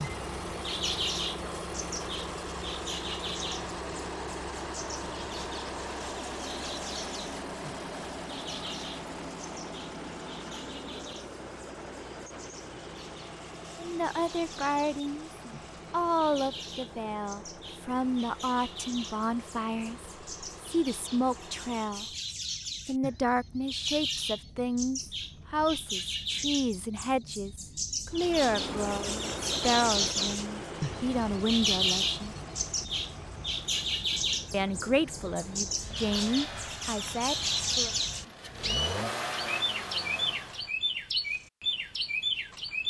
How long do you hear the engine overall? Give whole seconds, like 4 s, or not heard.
35 s.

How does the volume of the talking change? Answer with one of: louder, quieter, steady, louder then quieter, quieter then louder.
steady.